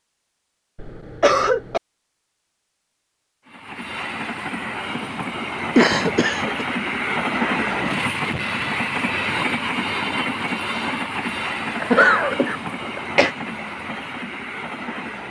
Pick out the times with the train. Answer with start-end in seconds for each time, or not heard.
3.5-15.2.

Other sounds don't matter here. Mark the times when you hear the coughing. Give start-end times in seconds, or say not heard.
0.8-1.8, 5.8-6.7, 11.8-13.3.